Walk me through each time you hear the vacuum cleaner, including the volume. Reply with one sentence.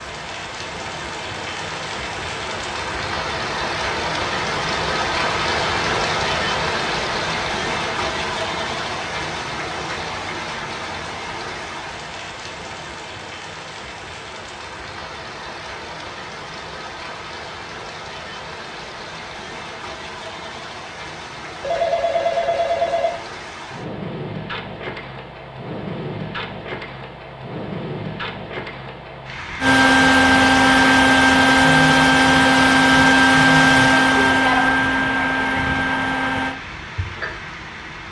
You can hear the vacuum cleaner from 29.6 to 36.6 s, getting quieter.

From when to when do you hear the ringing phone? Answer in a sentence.
You can hear the ringing phone from 21.6 to 23.1 s.